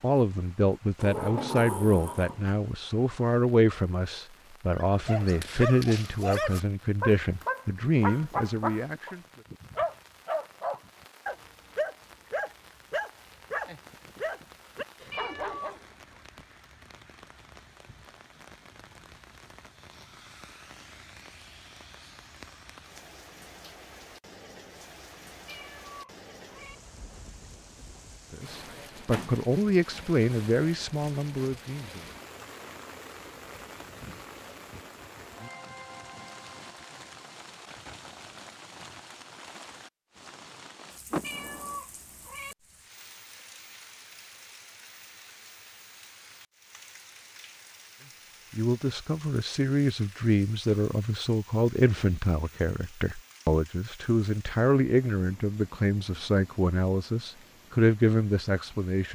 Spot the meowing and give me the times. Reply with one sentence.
The meowing can be heard from 15.1 to 16.2 s, from 25.4 to 26.8 s and from 41.2 to 42.5 s.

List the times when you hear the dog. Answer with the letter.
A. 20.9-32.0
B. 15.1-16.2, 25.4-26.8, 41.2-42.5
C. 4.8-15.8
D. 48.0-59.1
C.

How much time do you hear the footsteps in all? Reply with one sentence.
The footsteps can't be heard in this clip.